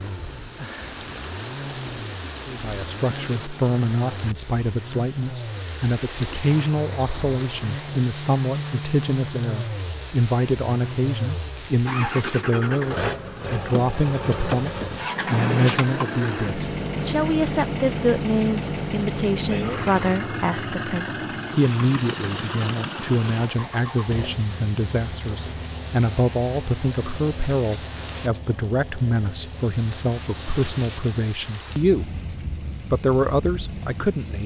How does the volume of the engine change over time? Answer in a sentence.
The volume of the engine goes up, then down.